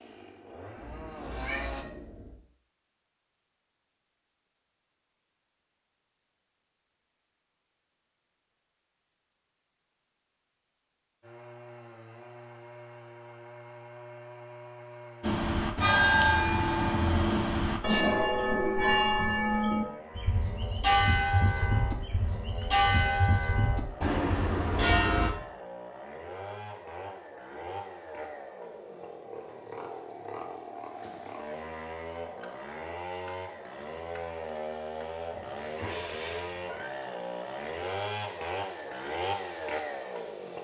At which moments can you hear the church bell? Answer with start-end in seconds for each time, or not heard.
15.2-25.3.